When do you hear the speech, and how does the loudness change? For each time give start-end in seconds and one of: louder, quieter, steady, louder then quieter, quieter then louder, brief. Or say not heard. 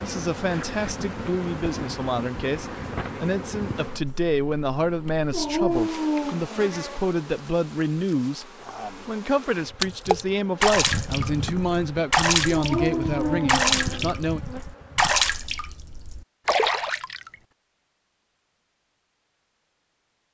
0.0-14.4 steady.